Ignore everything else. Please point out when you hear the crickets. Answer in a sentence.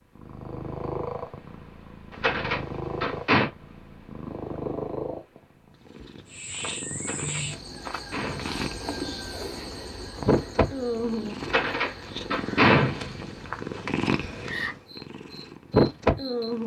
You can hear the crickets from 6.2 to 16.6 s.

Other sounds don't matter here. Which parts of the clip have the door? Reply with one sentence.
You can hear the door from 2.1 to 3.5 s, from 7.0 to 8.5 s and from 11.4 to 13.2 s.